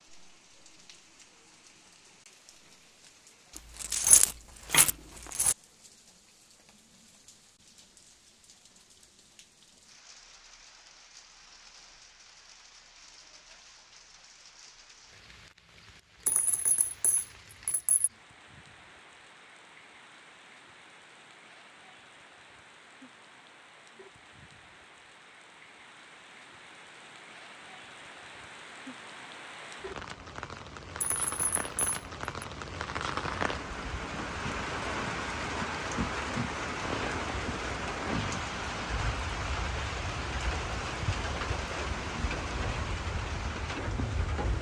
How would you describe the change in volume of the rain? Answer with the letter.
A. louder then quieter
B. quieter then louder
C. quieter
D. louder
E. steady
D.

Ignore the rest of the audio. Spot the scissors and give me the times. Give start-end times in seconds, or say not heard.
4.6-5.2.